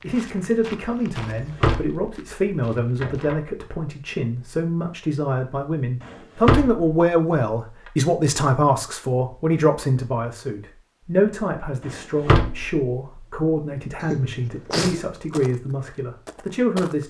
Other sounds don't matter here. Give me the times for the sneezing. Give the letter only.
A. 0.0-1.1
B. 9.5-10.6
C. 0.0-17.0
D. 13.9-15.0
D.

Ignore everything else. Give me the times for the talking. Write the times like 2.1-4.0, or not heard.
0.0-17.0.